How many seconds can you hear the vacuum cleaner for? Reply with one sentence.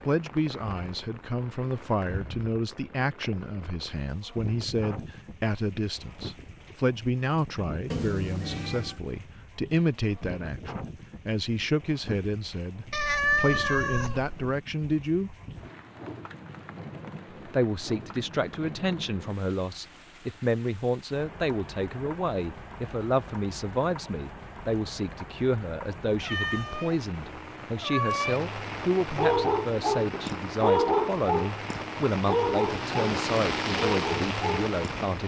You can't hear the vacuum cleaner here.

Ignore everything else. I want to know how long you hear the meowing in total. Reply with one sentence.
The meowing can be heard for 5 seconds in total.